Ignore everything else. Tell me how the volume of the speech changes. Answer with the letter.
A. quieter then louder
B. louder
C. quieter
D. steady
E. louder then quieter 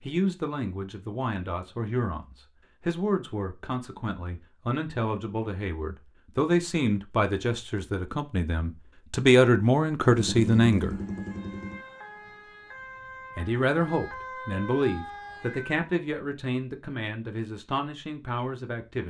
E.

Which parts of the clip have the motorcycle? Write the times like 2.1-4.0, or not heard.
10.1-11.8.